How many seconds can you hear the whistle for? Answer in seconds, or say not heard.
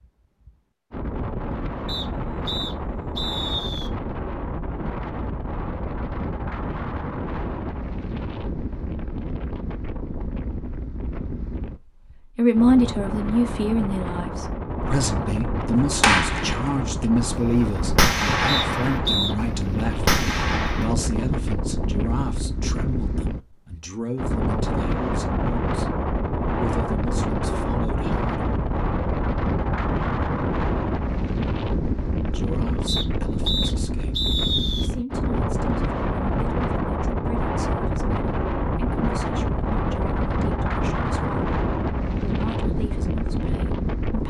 5 s.